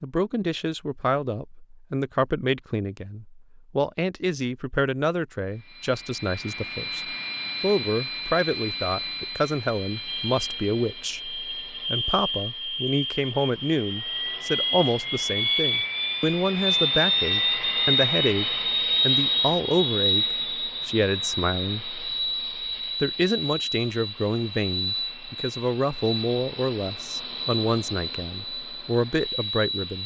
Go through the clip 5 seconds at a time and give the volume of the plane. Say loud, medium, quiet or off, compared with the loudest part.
off, medium, medium, loud, medium, medium.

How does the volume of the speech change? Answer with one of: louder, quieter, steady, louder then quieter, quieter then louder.
steady.